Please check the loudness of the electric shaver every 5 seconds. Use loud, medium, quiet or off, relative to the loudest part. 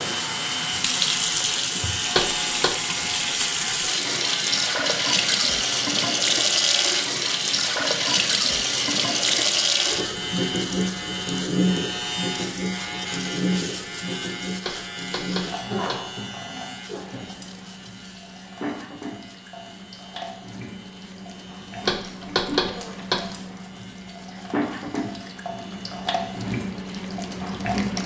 loud, loud, loud, medium, quiet, quiet.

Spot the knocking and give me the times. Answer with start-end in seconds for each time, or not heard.
2.1-2.8, 14.6-16.1, 21.9-23.2.